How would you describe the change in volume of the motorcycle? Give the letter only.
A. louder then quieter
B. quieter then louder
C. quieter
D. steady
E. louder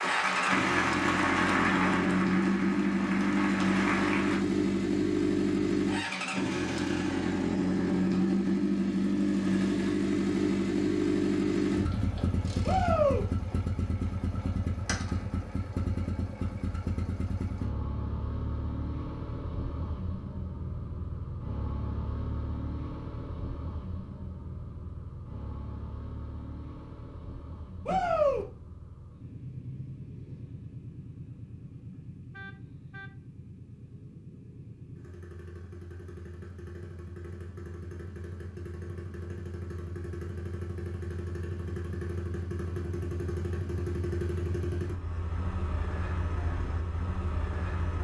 B.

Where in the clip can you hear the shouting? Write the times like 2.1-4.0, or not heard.
12.7-13.2, 27.9-28.4.